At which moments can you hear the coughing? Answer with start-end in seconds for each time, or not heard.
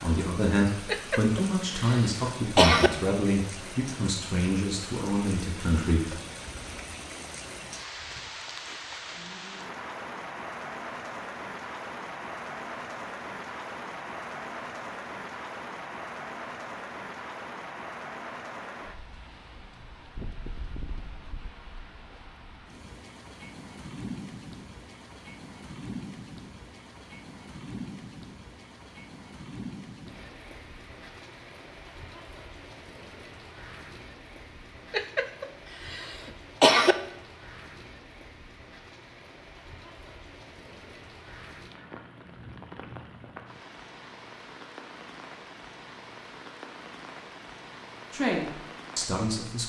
0.8-2.9, 34.9-37.0.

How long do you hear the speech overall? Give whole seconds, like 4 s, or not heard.
8 s.